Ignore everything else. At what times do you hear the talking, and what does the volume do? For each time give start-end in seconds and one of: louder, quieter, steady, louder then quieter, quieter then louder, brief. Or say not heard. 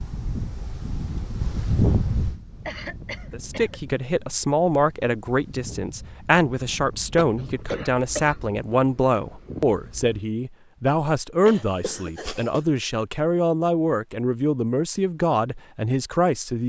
3.3-16.6 steady.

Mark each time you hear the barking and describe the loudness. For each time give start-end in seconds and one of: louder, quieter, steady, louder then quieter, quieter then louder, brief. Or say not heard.
not heard.